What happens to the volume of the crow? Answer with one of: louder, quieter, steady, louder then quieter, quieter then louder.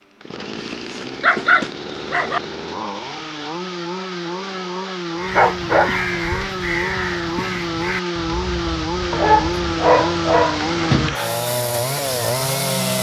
quieter.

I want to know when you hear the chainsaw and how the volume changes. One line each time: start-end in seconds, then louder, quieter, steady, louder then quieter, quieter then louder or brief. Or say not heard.
0.0-12.9 louder.